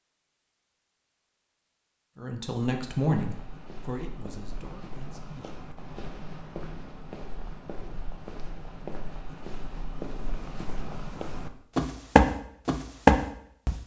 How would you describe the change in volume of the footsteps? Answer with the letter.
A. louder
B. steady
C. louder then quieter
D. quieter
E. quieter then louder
A.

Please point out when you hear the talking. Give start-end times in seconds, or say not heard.
2.1-5.8.